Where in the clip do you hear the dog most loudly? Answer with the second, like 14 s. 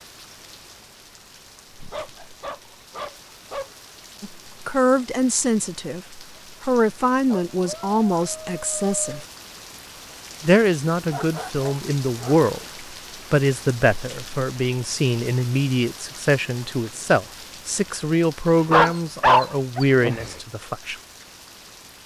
19 s.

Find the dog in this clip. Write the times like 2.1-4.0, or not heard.
1.8-3.7, 7.3-9.2, 11.1-12.4, 18.4-20.4.